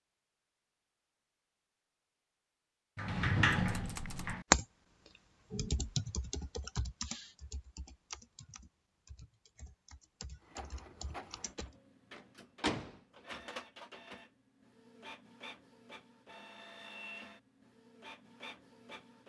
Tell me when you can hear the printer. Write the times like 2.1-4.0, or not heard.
10.4-19.2.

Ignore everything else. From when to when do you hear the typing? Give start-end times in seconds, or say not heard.
3.5-4.7, 5.5-11.8.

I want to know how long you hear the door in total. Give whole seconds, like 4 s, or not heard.
2 s.